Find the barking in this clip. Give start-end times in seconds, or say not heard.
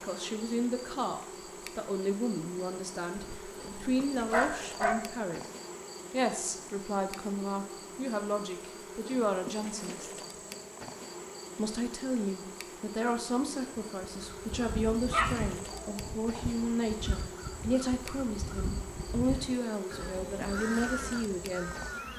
3.1-5.0, 15.0-16.9.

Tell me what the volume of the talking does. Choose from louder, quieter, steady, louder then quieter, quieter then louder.
steady.